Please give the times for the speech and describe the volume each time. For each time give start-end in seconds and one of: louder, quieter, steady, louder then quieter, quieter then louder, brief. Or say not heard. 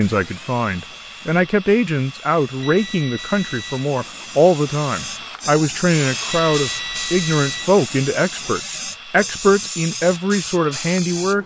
0.0-11.4 steady.